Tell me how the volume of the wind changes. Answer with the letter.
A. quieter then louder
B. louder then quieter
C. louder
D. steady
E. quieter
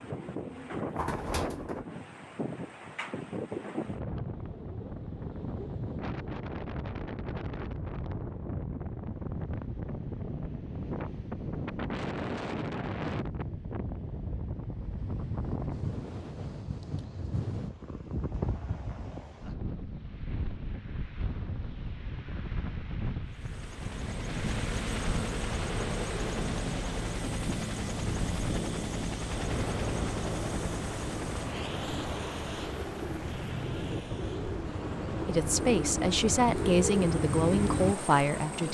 D.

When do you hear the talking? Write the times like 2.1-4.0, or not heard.
35.2-38.6.